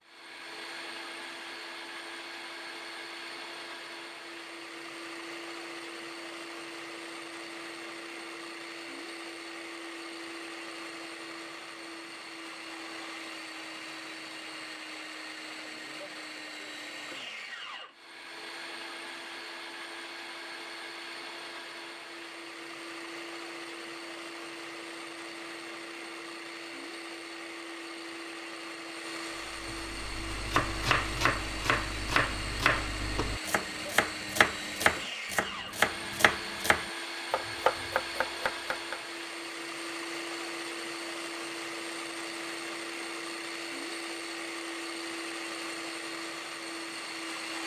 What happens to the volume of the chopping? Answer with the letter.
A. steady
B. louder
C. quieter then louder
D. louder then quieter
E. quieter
A.